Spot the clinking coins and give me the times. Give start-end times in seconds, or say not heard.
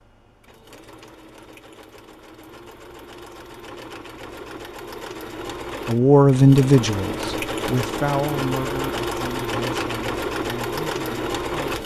not heard.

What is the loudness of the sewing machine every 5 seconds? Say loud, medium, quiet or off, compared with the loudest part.
quiet, loud, loud.